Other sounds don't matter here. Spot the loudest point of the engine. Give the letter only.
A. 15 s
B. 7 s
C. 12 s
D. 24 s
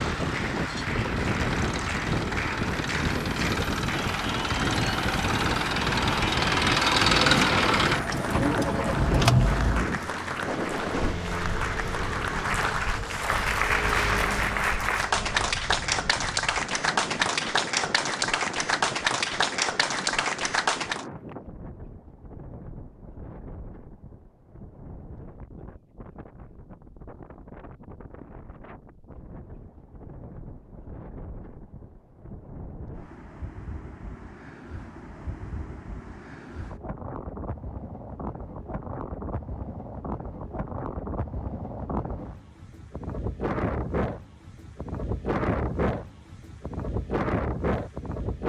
B.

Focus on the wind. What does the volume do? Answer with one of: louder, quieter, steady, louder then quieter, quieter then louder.
quieter then louder.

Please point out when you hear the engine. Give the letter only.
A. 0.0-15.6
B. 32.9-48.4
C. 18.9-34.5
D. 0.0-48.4
A.